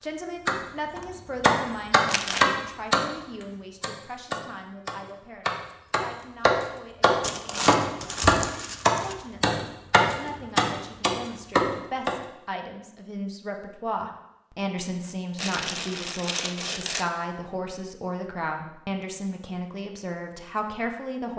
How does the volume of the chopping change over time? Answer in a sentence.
The loudness of the chopping goes down, then up.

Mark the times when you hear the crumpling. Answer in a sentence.
The crumpling can be heard from 2.0 to 2.5 s, from 7.2 to 9.2 s and from 15.3 to 17.1 s.